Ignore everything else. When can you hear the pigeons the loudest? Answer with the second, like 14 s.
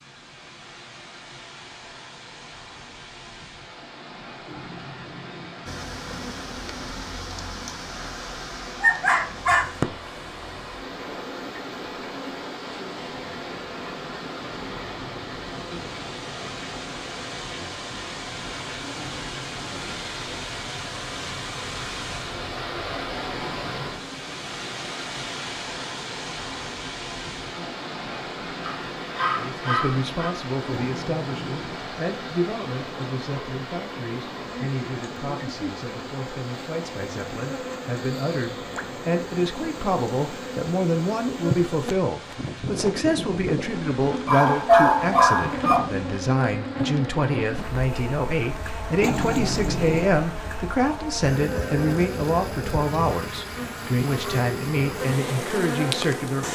49 s.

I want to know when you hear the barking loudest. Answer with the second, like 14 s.
45 s.